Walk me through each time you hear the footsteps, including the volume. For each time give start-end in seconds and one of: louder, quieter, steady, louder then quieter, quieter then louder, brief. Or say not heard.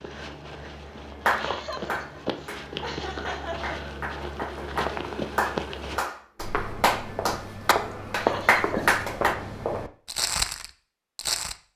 0.0-11.6 louder.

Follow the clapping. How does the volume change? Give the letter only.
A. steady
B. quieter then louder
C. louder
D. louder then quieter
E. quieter
C.